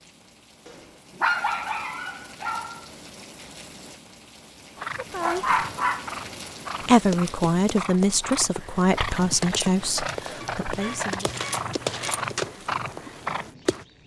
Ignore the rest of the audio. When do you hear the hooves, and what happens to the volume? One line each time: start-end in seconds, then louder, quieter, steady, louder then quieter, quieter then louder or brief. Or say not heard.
4.8-13.8 louder.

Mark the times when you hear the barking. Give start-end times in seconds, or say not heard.
0.7-2.9, 4.8-6.1, 10.4-12.3.